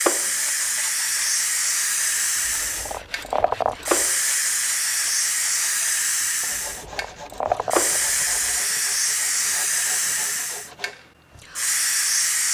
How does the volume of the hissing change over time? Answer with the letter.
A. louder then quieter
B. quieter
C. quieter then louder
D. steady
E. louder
D.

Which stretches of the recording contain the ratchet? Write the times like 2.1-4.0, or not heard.
2.5-4.0, 6.5-8.6.